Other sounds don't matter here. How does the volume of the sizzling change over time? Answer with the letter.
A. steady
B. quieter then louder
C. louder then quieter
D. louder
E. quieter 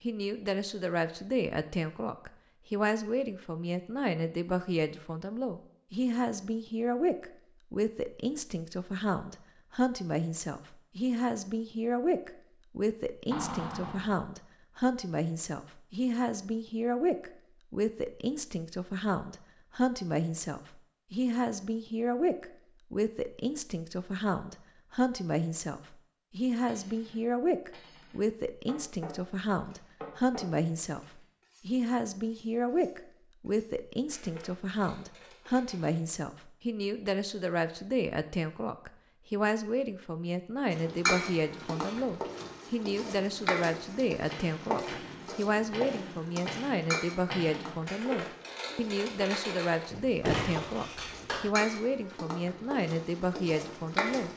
B.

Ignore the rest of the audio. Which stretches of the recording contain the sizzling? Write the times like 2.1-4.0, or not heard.
40.7-54.3.